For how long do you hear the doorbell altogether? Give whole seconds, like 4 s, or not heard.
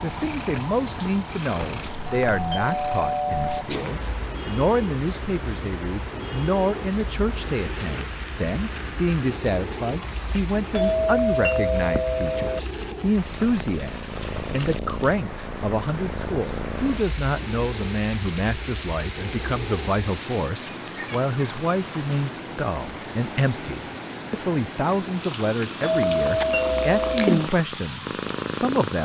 5 s.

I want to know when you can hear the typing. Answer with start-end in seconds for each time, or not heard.
not heard.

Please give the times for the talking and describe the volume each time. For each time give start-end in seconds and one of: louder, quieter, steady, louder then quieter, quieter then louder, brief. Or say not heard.
0.0-29.0 steady.